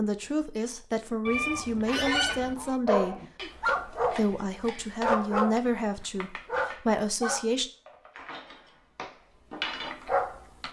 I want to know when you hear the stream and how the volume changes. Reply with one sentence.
The stream can't be heard in this clip.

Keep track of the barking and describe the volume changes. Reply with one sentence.
The loudness of the barking goes down, then up.